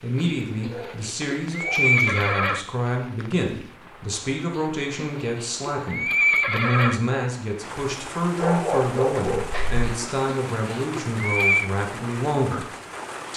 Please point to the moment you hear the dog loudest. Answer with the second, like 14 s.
9 s.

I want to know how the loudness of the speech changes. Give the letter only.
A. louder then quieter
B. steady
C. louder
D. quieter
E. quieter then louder
B.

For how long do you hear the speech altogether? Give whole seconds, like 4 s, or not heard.
13 s.